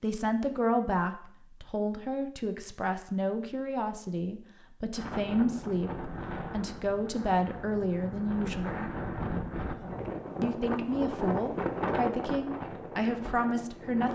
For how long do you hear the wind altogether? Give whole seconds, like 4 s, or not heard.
9 s.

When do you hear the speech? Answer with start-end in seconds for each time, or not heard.
0.0-8.9, 10.4-14.1.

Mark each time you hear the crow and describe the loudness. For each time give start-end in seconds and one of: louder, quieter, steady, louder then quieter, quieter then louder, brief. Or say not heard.
not heard.